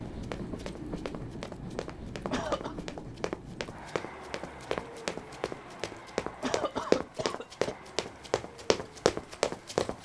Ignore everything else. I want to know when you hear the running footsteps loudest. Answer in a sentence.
The volume of the running footsteps peaks at 7 seconds.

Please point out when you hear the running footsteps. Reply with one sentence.
The running footsteps can be heard from 0.0 to 9.9 s.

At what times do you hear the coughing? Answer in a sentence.
The coughing can be heard from 2.3 to 2.8 s and from 6.4 to 7.8 s.